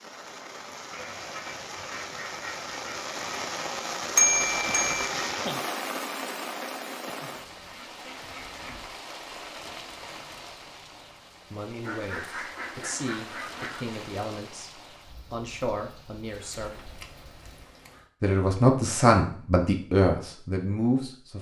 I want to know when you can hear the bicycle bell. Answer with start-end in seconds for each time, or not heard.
4.2-5.1.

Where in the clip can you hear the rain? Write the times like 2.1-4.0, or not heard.
0.0-17.7.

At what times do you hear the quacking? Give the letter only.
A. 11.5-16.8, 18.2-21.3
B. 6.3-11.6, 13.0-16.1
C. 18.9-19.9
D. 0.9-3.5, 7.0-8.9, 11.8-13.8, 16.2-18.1
D.